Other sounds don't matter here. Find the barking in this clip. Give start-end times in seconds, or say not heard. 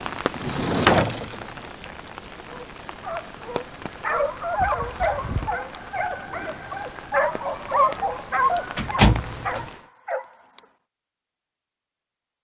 2.5-10.6.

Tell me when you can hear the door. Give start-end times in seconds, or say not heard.
0.3-1.4, 4.5-5.5, 8.8-9.7.